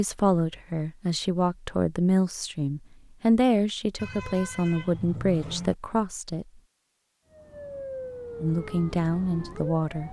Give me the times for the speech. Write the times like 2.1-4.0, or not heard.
0.0-6.5, 8.4-10.0.